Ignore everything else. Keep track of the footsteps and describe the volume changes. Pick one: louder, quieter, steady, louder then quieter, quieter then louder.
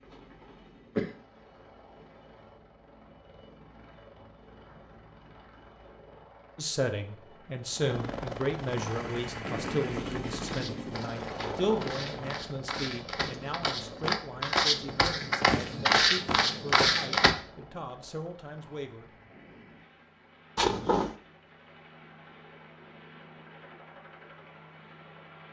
louder.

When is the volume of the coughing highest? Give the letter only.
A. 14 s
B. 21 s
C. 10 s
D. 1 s
B.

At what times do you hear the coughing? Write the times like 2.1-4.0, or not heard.
0.1-1.1, 11.3-12.0, 20.6-21.1.